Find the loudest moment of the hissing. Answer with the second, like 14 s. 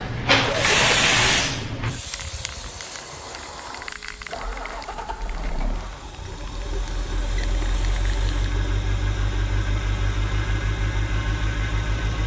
1 s.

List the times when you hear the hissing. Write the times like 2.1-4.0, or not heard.
0.0-8.6.